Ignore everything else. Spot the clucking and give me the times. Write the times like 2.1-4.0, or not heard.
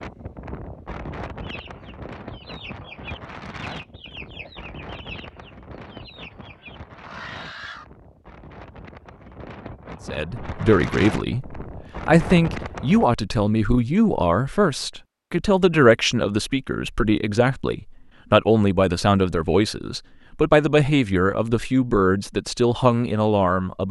1.4-7.8.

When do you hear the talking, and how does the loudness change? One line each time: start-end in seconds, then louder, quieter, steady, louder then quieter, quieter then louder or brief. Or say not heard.
10.1-23.8 steady.